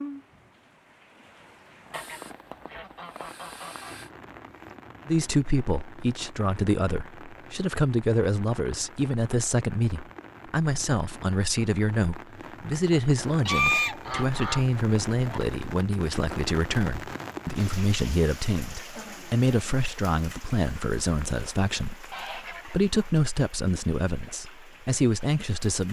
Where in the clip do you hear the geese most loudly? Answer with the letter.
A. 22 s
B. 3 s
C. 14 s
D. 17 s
C.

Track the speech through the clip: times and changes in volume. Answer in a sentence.
The speech can be heard from 5.0 to 25.8 s, at a steady volume.